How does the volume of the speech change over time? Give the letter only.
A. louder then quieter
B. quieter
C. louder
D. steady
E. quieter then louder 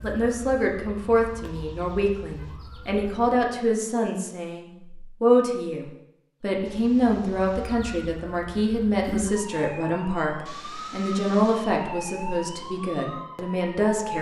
D.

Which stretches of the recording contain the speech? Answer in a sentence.
You can hear the speech from 0.0 to 14.1 s.